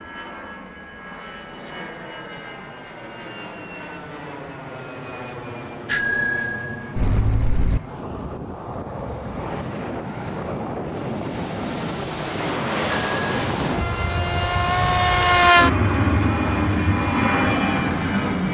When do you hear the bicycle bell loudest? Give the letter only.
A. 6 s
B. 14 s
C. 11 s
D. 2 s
A.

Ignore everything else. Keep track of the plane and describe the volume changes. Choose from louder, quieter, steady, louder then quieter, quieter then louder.
louder.